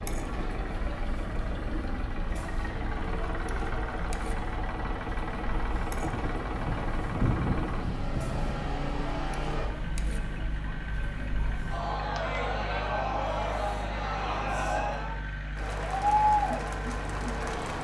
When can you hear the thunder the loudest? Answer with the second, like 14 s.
7 s.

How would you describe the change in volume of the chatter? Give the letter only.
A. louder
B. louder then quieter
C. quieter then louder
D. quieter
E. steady
A.